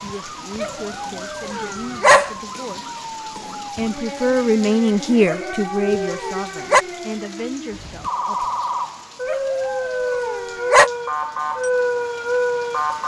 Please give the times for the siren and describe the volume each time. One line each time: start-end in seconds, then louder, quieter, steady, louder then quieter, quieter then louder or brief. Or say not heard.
0.0-13.0 louder.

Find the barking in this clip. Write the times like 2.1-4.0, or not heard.
0.6-2.4, 5.2-6.8, 9.2-10.9.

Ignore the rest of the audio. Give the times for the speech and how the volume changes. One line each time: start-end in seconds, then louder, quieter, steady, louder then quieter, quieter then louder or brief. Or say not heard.
0.0-3.0 brief
3.8-8.4 quieter.